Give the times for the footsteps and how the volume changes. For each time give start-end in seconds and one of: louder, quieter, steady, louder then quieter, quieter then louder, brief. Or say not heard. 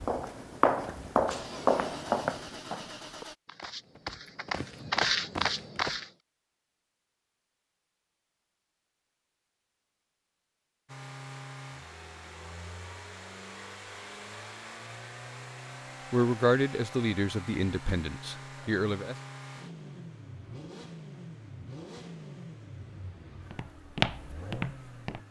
0.0-6.0 quieter then louder
23.5-25.2 brief.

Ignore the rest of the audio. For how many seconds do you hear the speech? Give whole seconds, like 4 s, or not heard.
3 s.